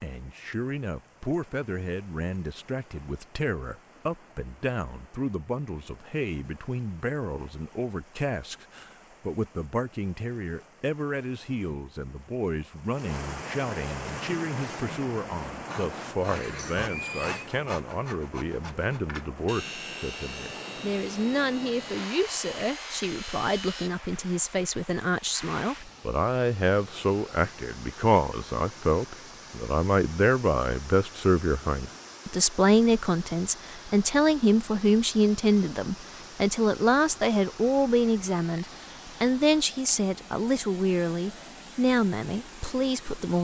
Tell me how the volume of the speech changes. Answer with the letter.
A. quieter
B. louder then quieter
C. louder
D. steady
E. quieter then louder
C.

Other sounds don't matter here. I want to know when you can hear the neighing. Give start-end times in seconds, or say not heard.
16.4-17.5.